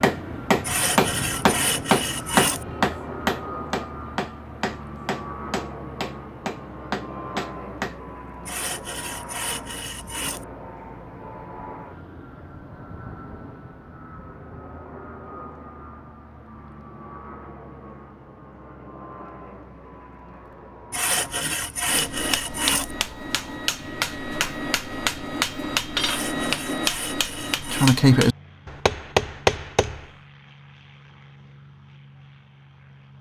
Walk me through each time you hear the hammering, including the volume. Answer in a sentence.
The hammering can be heard from 0.0 to 8.0 s, getting quieter; and from 21.9 to 30.1 s, getting louder.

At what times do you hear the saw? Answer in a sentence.
You can hear the saw from 0.6 to 2.6 s, from 8.4 to 10.4 s, from 20.9 to 22.9 s and from 26.0 to 28.0 s.